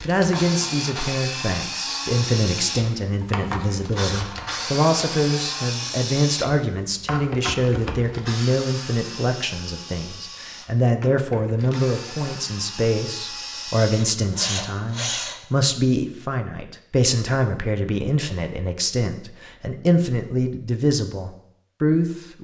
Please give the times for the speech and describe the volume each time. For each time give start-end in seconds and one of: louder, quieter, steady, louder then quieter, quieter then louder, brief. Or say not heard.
0.0-22.3 steady.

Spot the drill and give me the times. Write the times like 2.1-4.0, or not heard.
0.0-15.4.